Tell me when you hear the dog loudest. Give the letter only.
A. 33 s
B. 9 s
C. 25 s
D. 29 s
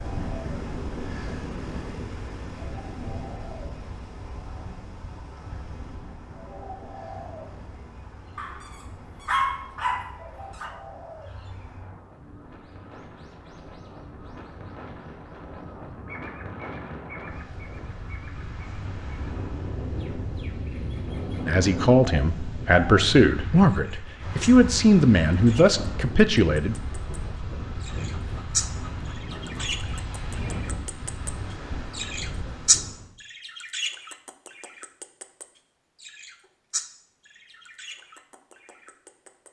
B.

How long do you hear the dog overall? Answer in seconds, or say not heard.
4 s.